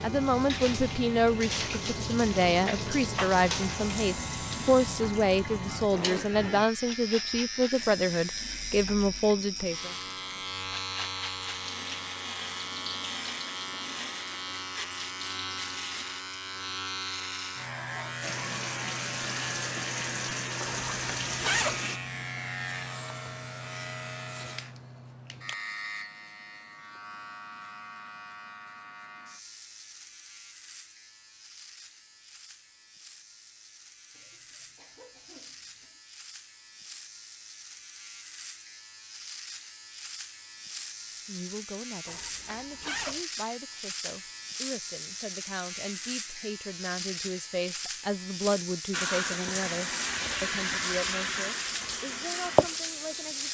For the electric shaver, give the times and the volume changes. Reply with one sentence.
The electric shaver can be heard from 0.0 to 53.4 s, getting quieter then louder.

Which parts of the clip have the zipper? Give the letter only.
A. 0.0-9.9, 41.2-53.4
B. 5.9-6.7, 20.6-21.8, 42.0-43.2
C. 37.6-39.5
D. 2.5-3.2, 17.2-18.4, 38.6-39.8
B.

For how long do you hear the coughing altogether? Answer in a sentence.
You can hear the coughing for 2 seconds altogether.